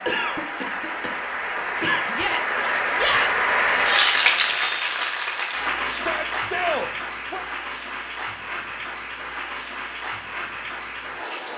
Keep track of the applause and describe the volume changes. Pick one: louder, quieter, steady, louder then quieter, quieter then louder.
louder then quieter.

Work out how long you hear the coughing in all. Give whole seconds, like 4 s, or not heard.
2 s.